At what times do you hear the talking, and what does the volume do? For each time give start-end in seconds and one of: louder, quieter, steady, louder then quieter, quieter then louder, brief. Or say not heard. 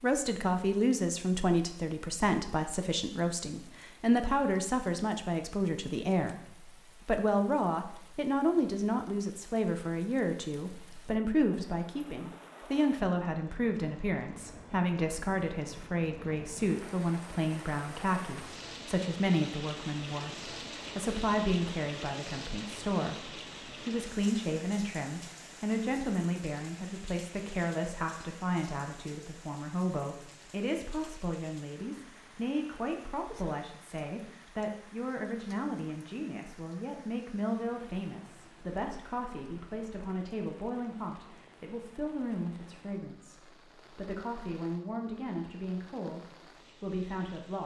0.0-47.6 quieter.